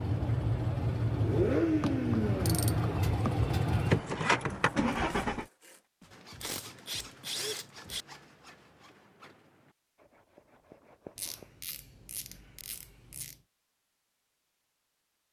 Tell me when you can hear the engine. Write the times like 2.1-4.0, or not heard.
0.0-5.5.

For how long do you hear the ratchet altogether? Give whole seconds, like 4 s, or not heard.
6 s.